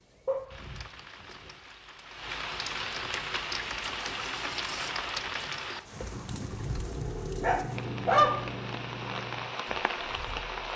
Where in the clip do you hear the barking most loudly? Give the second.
8 s.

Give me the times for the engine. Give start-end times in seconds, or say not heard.
3.1-10.7.